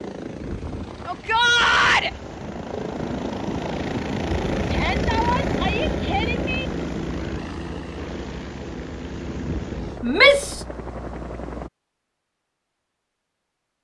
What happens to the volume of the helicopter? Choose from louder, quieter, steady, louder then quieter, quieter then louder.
louder then quieter.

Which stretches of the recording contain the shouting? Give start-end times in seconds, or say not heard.
1.1-2.1, 4.7-6.7, 10.0-10.7.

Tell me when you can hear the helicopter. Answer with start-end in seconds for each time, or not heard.
0.0-11.7.